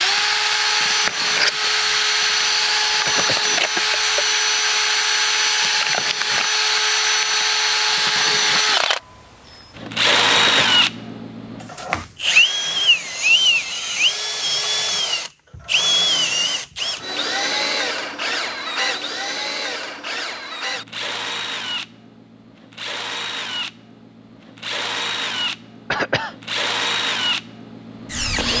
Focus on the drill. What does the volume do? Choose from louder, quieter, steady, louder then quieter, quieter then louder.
quieter.